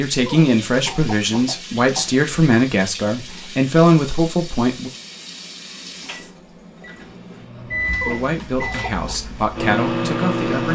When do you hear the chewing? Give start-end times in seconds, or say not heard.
not heard.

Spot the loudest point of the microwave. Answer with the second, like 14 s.
10 s.